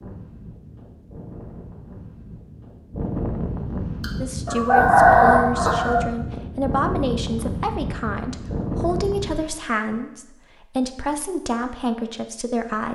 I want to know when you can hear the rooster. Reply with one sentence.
You can hear the rooster from 4.0 to 6.0 s.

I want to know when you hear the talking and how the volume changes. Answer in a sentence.
You can hear the talking from 4.2 to 12.8 s, at a steady volume.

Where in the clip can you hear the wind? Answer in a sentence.
The wind can be heard from 0.0 to 9.6 s.